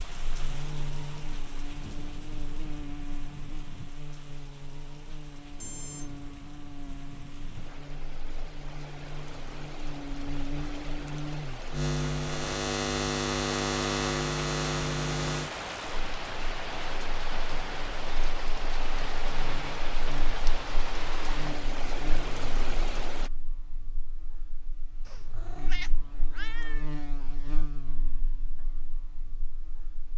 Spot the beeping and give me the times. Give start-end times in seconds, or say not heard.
5.5-6.2.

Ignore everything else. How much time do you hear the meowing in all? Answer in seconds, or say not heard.
2 s.